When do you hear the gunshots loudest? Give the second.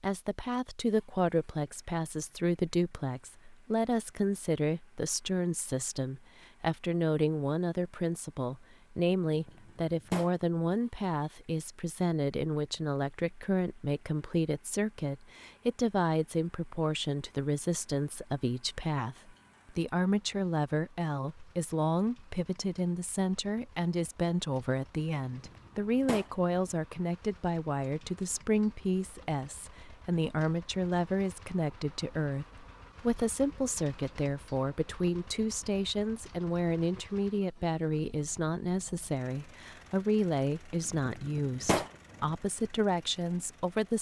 42 s.